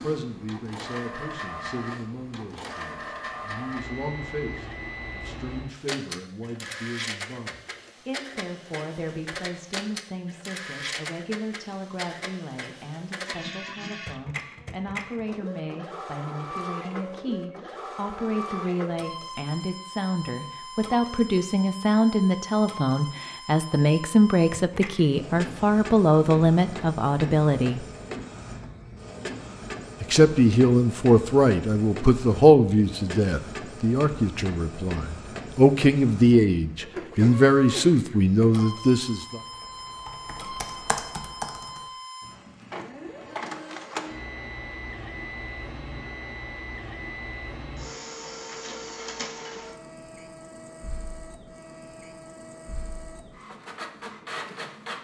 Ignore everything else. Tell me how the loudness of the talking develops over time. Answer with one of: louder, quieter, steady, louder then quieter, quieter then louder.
louder.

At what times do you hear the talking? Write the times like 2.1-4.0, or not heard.
0.0-27.9, 30.0-39.4.